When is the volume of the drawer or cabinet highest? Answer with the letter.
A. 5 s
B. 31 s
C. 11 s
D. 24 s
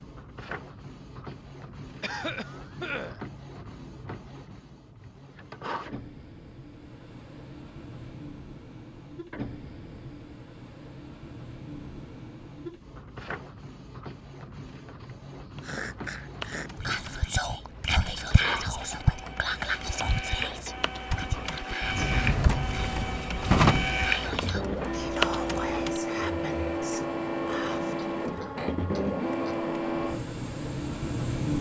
D.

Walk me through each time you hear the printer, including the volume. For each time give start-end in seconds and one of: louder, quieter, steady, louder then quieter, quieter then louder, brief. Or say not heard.
0.0-31.5 louder.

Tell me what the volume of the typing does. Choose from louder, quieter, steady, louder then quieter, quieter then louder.
louder.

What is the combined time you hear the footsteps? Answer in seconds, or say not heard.
not heard.